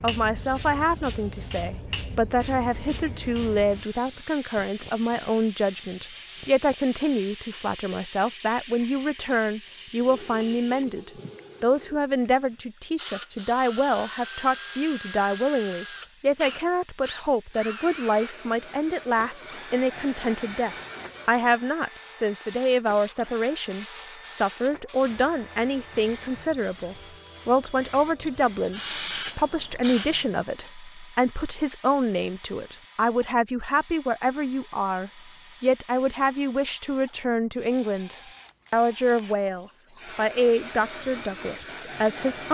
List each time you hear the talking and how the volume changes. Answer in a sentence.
You can hear the talking from 0.0 to 42.4 s, at a steady volume.